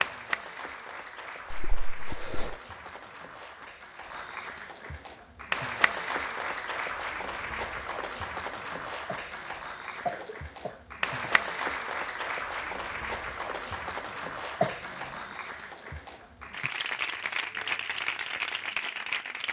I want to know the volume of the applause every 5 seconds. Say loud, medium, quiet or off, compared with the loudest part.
medium, loud, loud, loud.